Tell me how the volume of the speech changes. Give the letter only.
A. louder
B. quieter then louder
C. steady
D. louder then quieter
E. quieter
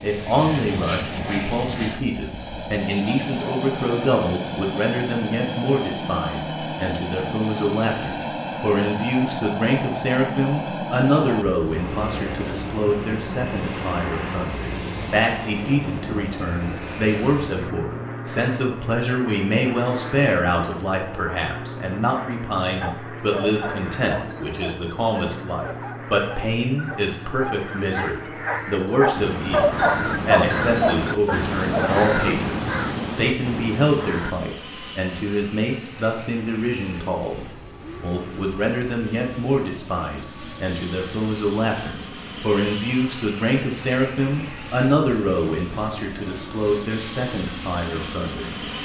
C.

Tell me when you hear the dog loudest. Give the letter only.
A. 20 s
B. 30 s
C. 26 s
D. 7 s
B.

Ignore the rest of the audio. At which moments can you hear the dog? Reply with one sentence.
You can hear the dog from 22.6 to 32.0 s.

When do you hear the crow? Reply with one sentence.
The crow can be heard from 28.0 to 34.4 s.